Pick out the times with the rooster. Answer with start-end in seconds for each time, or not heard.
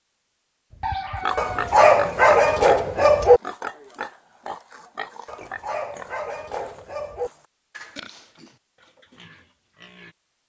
0.7-1.8.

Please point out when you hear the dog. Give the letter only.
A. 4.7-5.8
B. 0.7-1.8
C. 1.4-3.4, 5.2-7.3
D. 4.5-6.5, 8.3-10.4
C.